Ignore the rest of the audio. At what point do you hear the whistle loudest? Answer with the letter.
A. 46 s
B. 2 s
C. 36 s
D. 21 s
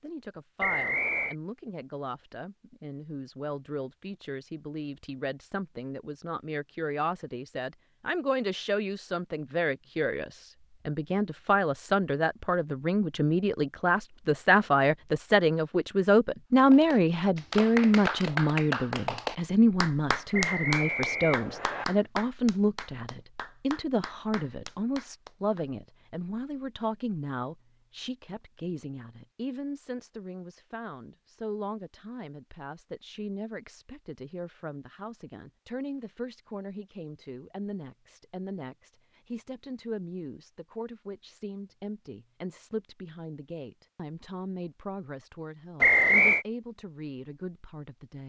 A.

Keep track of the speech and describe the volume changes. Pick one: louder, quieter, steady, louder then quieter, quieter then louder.
louder then quieter.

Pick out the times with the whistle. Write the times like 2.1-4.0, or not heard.
0.6-1.4, 20.3-21.9, 45.8-46.5.